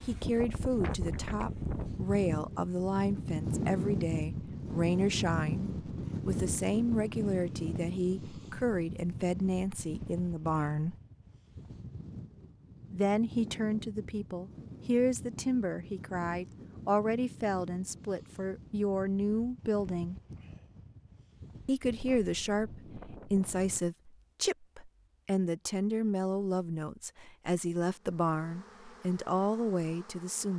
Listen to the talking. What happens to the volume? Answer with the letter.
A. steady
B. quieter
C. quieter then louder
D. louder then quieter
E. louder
A.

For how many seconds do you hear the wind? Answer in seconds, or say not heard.
24 s.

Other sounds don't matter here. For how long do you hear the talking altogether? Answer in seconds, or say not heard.
27 s.